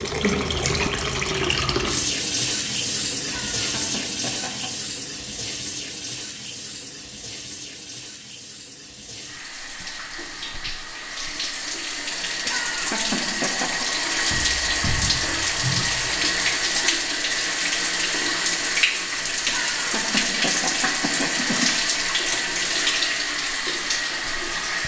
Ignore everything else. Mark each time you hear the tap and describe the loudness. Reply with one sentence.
The tap can be heard from 0.0 to 24.8 s, getting quieter then louder.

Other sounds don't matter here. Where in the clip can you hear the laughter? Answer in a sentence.
The laughter can be heard from 3.1 to 4.7 s, from 12.3 to 13.8 s and from 19.4 to 21.7 s.